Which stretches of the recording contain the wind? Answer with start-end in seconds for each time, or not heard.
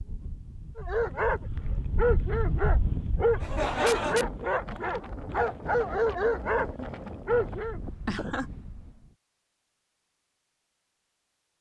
0.0-9.2.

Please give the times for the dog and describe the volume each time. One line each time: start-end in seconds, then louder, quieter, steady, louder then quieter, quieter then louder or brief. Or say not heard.
0.8-7.8 steady.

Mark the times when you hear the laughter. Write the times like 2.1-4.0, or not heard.
3.4-4.2, 8.1-8.6.